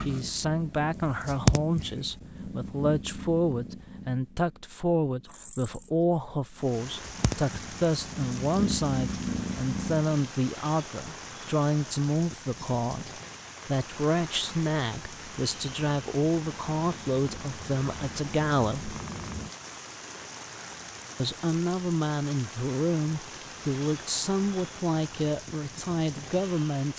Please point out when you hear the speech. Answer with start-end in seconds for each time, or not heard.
0.1-18.9, 21.2-26.9.